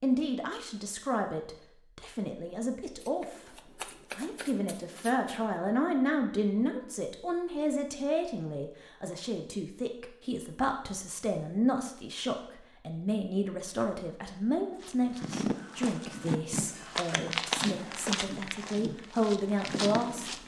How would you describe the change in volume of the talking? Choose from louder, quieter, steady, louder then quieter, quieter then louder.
steady.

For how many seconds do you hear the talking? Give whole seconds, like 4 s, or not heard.
20 s.